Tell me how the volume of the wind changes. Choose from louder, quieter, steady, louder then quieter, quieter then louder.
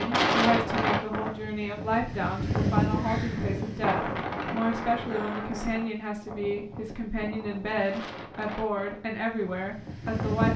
quieter.